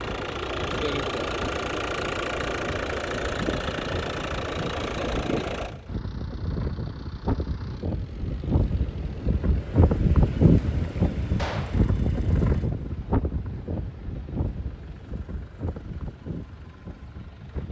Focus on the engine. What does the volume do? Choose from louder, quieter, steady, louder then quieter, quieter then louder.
quieter.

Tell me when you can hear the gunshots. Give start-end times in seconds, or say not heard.
11.3-11.8.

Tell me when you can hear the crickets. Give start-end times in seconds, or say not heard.
not heard.